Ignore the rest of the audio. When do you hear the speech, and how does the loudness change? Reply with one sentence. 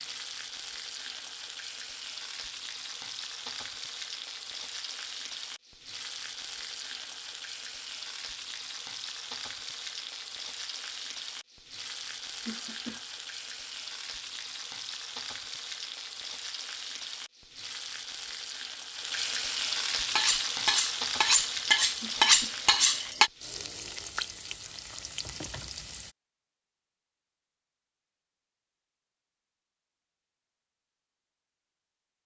You can't hear the speech here.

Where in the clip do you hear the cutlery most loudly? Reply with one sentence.
The volume of the cutlery peaks at 22 seconds.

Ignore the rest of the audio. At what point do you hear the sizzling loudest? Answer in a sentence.
The volume of the sizzling peaks at 20 seconds.